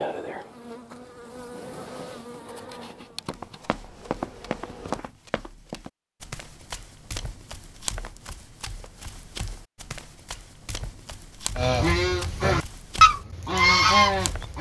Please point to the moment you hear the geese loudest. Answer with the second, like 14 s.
13 s.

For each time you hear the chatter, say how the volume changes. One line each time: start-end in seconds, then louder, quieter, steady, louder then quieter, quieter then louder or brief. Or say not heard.
not heard.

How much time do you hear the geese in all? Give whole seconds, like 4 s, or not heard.
3 s.